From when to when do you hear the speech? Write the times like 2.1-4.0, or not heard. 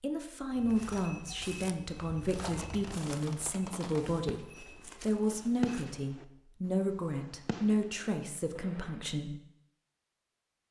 0.0-9.3.